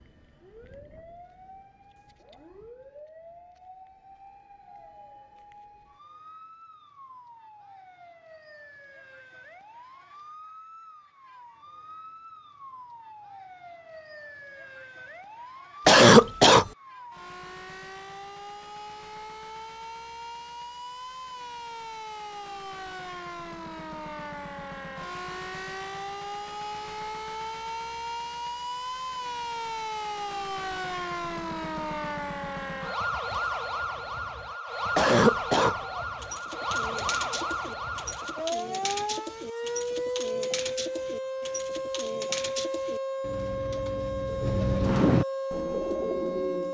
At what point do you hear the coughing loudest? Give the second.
16 s.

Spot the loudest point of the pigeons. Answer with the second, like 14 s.
45 s.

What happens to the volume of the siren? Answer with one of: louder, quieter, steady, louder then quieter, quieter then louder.
louder.